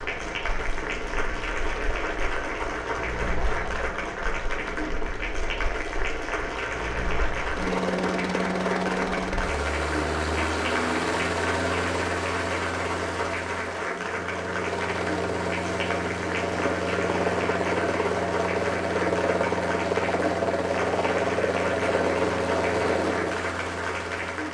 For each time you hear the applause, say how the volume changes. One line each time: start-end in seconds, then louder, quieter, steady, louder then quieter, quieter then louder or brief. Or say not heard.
0.0-24.4 steady.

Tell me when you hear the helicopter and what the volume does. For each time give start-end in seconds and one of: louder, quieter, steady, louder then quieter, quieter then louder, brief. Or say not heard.
0.0-24.4 louder.